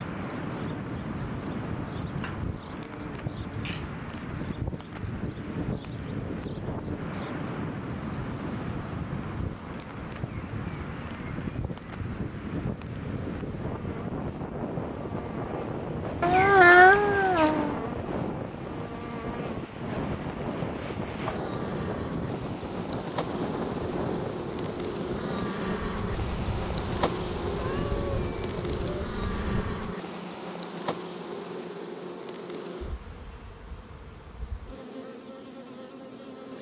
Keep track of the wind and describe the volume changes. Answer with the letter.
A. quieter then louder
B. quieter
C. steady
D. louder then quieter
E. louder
C.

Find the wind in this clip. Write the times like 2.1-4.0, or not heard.
0.0-29.9.